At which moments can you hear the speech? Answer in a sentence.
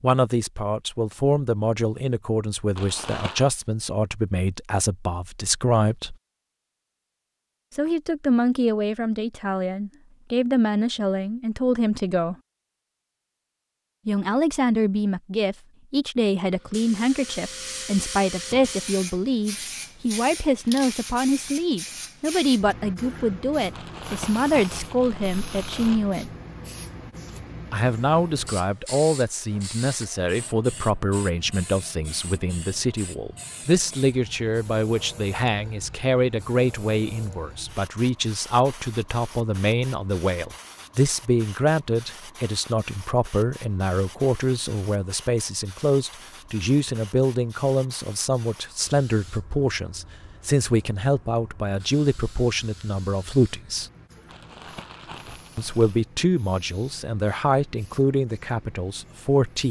The speech can be heard from 0.0 to 6.2 s, from 7.8 to 12.3 s, from 14.1 to 26.3 s, from 27.7 to 53.9 s and from 55.5 to 59.6 s.